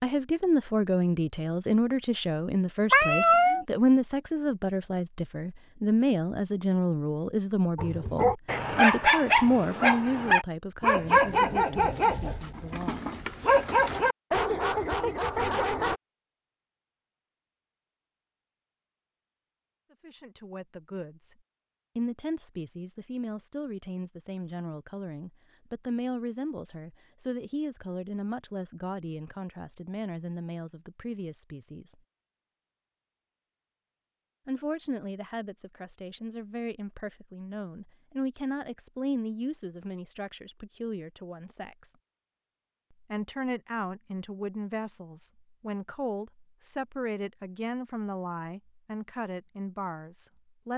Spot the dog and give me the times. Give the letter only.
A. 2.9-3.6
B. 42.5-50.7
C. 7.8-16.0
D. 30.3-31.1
C.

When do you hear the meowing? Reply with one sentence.
You can hear the meowing from 2.9 to 3.6 s.